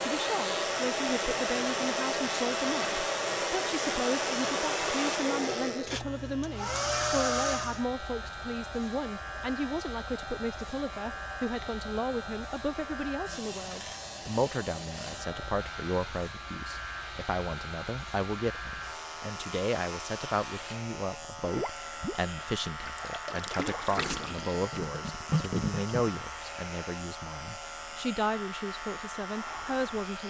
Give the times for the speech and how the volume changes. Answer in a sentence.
The speech can be heard from 0.0 to 30.2 s, at a steady volume.